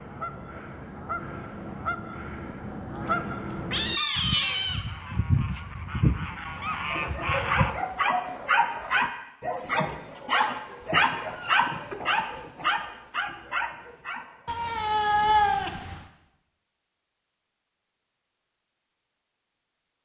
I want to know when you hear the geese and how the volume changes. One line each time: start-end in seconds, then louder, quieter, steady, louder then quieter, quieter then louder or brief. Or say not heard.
0.0-7.8 louder.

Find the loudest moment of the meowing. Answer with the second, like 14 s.
15 s.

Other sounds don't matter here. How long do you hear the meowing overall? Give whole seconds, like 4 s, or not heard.
4 s.